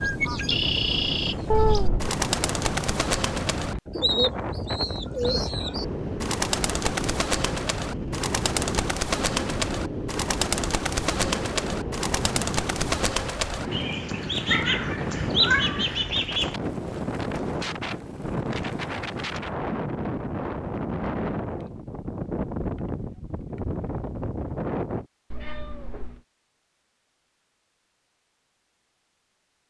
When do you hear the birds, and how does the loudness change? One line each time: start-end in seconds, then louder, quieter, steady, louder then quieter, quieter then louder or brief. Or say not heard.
0.0-16.6 steady.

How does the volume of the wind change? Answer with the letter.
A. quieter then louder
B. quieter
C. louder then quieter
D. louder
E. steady
E.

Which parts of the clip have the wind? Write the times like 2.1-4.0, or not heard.
0.0-25.1.